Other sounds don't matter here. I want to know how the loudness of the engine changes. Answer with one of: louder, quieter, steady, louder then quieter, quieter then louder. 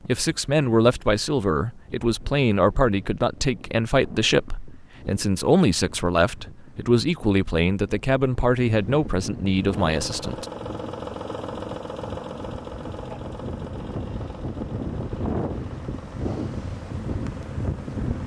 quieter.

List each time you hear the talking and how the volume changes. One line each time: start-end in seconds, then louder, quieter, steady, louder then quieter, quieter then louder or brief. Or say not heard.
0.1-10.4 steady.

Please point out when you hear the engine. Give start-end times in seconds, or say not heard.
9.6-18.1.